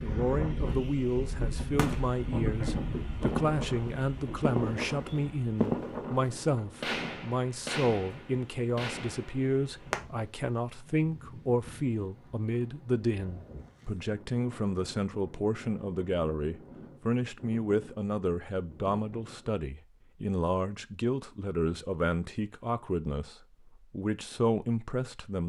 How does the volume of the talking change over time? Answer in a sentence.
The loudness of the talking stays about the same.